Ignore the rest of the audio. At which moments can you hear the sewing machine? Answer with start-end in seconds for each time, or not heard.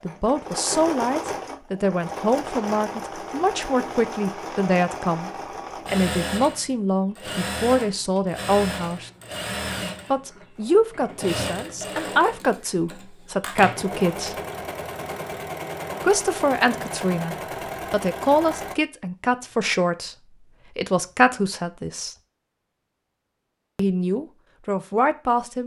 0.0-18.8.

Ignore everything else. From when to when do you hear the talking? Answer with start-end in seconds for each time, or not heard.
0.0-9.1, 10.1-14.4, 16.0-22.1, 23.8-25.6.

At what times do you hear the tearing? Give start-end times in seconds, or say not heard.
not heard.